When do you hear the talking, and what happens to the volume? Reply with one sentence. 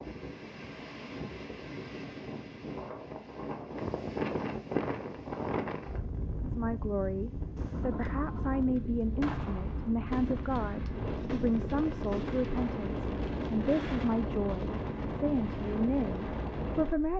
The talking can be heard from 6.4 to 17.1 s, at a steady volume.